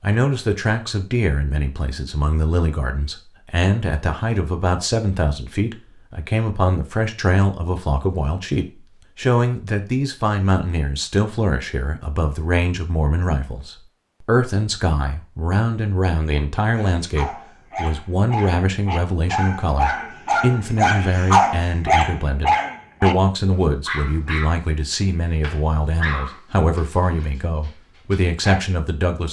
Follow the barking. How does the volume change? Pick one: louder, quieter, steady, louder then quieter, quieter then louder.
louder then quieter.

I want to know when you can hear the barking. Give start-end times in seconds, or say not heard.
16.8-23.1, 23.9-28.6.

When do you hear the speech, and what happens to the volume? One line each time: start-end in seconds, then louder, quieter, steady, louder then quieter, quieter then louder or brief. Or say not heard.
0.0-29.2 steady.